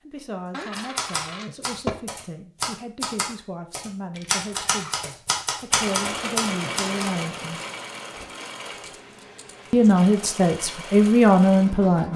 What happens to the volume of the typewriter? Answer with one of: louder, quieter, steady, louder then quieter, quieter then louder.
louder.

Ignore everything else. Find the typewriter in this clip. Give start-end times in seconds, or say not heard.
0.8-7.0.